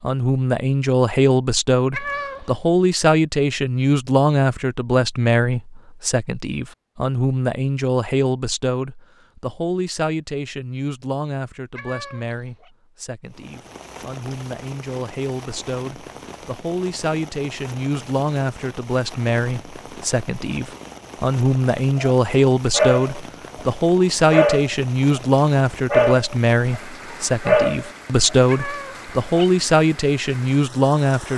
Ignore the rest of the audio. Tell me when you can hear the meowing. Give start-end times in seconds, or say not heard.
1.9-2.5, 11.8-12.7, 28.4-29.5.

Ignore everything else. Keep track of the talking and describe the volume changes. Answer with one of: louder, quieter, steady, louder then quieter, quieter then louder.
quieter then louder.